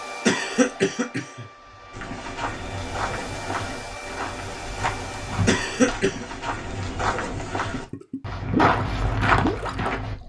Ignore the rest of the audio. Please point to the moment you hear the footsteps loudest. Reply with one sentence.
The volume of the footsteps peaks at 9 seconds.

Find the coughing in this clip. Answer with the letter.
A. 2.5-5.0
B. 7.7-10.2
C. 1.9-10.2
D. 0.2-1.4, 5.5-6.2
D.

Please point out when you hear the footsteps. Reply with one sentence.
You can hear the footsteps from 1.9 to 10.2 s.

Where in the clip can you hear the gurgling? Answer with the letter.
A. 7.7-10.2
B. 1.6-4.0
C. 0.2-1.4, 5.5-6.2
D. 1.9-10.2
A.